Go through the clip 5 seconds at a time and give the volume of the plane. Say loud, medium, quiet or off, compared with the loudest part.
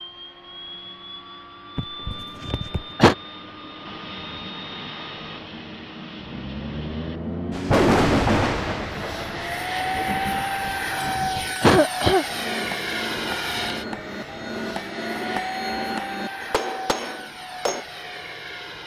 medium, loud, loud, medium.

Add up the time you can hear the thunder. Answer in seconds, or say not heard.
4 s.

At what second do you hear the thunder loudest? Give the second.
8 s.